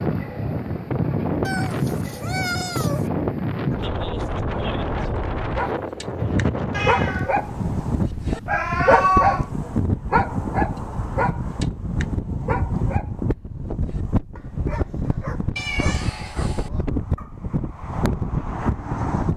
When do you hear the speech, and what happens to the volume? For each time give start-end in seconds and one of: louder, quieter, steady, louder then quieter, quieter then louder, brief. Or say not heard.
not heard.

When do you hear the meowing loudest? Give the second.
9 s.